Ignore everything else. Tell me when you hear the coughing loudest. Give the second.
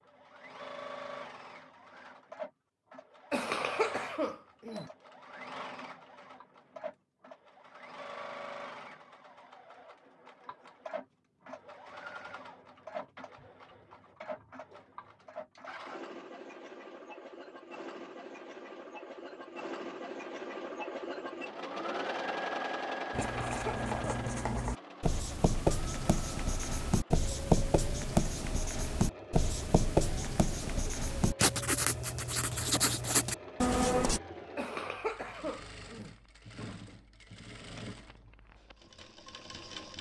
4 s.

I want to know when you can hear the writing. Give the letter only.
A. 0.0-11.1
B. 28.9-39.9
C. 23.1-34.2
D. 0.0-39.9
C.